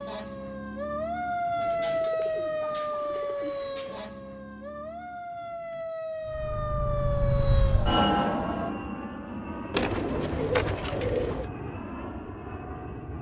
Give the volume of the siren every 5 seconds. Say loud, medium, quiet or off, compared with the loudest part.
loud, loud, off.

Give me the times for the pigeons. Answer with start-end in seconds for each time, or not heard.
1.6-4.1, 9.7-11.5.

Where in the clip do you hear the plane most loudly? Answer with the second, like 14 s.
8 s.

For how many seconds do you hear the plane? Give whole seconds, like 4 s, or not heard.
7 s.